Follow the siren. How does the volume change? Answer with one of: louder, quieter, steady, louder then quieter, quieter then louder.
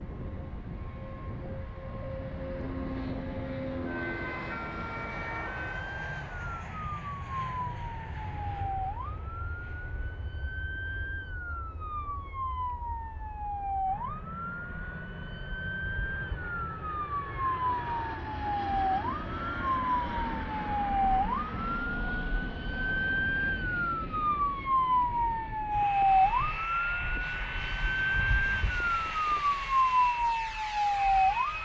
louder.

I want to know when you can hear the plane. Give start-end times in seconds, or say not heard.
0.0-31.6.